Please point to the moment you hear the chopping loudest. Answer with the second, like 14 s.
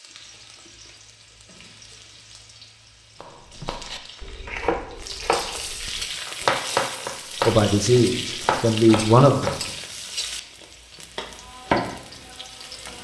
7 s.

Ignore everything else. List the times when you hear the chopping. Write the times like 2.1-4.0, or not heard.
3.2-9.6.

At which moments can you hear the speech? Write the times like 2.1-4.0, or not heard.
7.5-9.6.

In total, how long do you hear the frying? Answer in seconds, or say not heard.
13 s.